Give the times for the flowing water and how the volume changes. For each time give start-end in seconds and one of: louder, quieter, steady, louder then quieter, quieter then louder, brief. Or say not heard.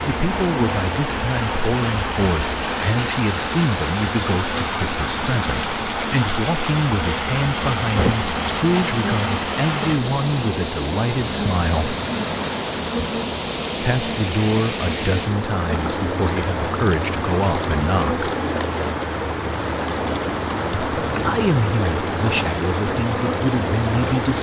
0.0-24.3 steady.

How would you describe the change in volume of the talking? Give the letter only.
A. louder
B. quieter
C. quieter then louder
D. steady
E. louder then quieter
D.